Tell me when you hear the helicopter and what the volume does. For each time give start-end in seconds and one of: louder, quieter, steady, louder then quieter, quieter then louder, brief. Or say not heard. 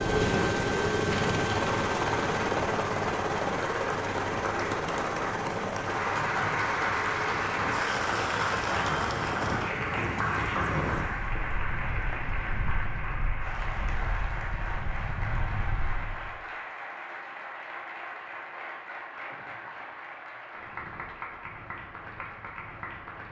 0.0-11.3 quieter.